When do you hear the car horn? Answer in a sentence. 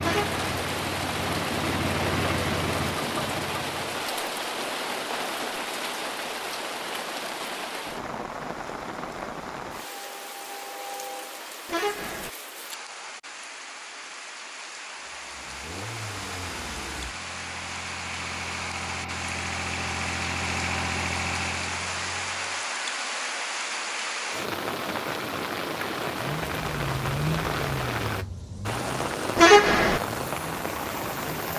The car horn can be heard from 0.0 to 0.4 s, from 11.7 to 12.3 s and from 29.4 to 30.0 s.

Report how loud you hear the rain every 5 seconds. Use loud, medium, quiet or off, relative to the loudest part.
loud, loud, medium, medium, loud, loud, loud.